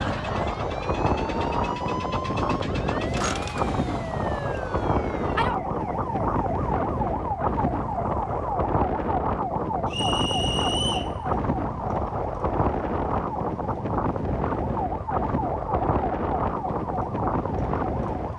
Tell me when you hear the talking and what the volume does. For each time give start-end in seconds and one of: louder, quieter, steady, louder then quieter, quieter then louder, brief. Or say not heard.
not heard.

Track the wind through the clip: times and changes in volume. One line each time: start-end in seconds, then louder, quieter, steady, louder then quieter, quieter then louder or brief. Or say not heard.
0.0-18.3 steady.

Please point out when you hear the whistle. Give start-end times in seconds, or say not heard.
9.9-11.2.